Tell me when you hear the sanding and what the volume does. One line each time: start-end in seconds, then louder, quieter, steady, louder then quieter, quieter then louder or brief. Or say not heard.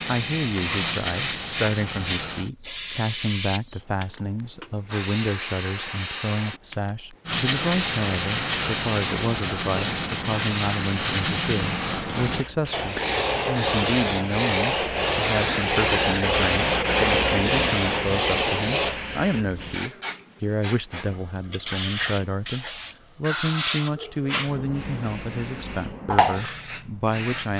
0.0-2.5 brief
7.2-18.9 steady.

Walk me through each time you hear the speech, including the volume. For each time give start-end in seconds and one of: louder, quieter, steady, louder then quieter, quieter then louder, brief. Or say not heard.
0.1-27.5 steady.